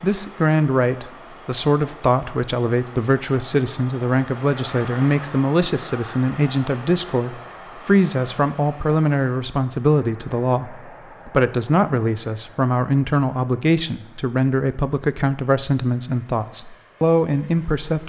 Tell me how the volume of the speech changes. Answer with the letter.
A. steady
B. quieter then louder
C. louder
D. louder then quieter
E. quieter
A.